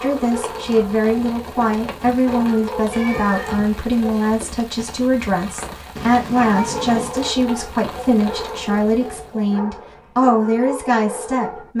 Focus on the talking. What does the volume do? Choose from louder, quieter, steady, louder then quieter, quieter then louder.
steady.